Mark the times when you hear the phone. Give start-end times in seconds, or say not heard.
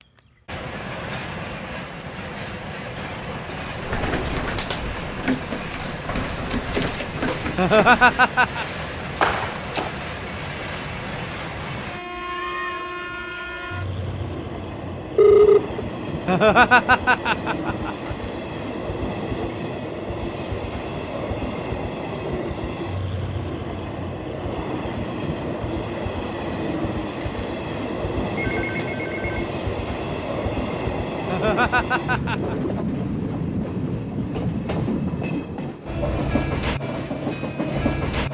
9.2-9.9, 15.2-15.8, 28.4-29.5.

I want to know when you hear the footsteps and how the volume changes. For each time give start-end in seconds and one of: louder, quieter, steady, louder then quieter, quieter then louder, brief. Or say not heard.
not heard.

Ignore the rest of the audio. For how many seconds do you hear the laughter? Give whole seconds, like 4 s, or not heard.
4 s.